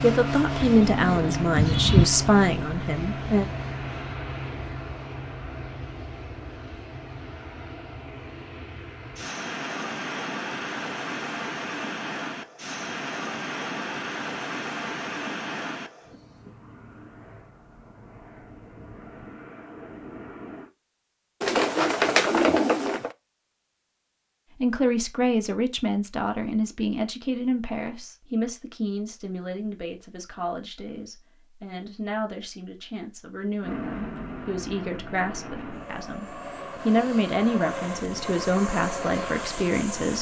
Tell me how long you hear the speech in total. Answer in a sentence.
The speech can be heard for 19 seconds in total.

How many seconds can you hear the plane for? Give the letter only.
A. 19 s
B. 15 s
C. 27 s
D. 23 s
C.